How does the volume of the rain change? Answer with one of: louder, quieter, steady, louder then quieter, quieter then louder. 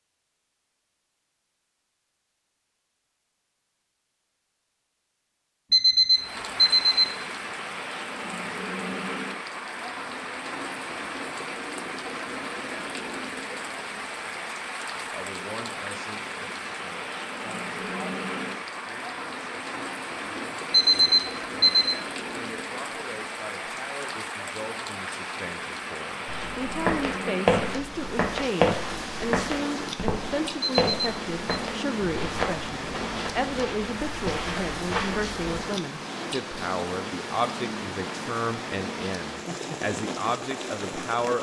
steady.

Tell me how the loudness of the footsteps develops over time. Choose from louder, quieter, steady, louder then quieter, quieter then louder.
quieter.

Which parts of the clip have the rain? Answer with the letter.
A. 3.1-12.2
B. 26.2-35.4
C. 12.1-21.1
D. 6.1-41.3
D.